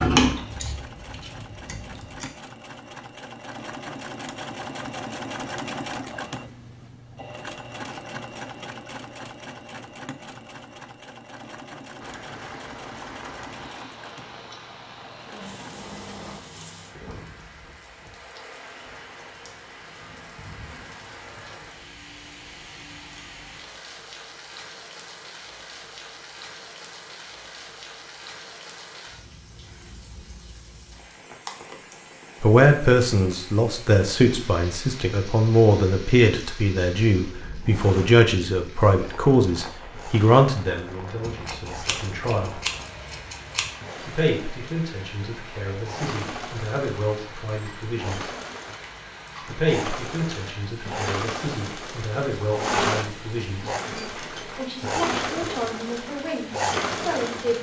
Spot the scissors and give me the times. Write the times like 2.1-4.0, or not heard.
0.0-2.3, 41.2-43.7.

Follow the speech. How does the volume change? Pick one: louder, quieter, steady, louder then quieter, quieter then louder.
quieter.